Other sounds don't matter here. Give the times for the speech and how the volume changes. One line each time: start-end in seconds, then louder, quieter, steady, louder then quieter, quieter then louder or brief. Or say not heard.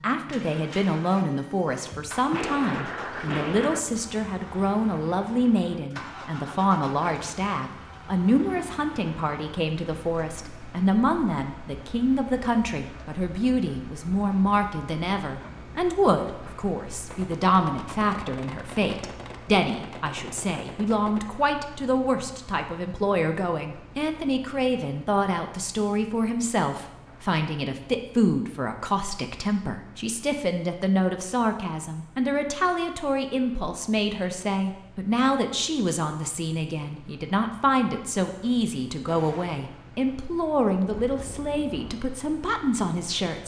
0.0-43.4 steady.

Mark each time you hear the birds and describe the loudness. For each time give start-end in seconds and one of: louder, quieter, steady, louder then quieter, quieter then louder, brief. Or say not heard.
not heard.